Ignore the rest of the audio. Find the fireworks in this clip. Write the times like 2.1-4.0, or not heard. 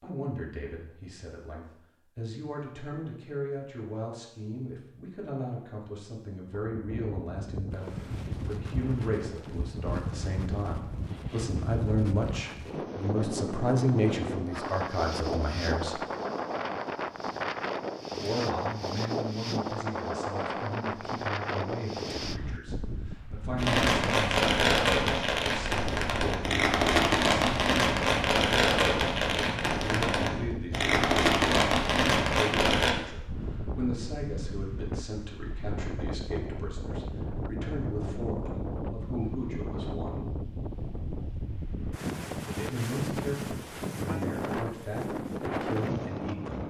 23.6-33.0.